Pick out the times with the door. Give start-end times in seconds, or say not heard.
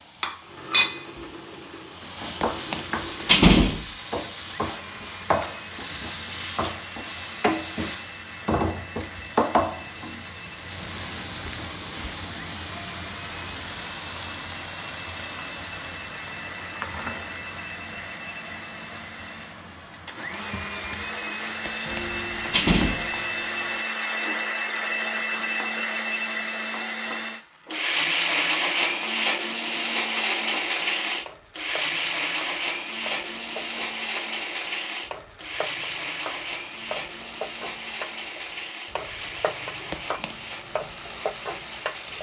2.4-3.9, 21.6-23.1, 39.9-40.4.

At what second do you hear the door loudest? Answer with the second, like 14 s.
3 s.